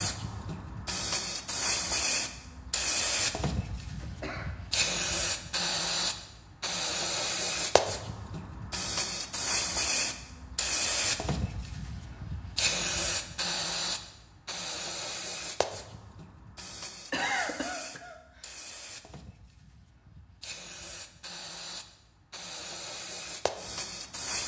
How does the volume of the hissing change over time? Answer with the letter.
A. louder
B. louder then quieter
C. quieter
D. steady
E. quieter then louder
C.